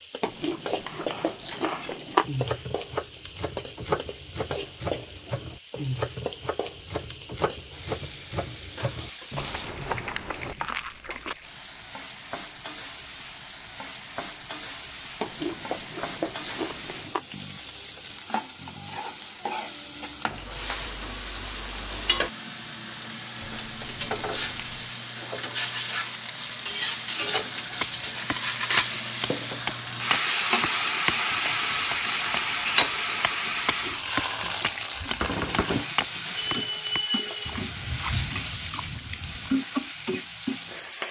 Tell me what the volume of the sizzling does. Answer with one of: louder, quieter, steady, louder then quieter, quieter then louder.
louder.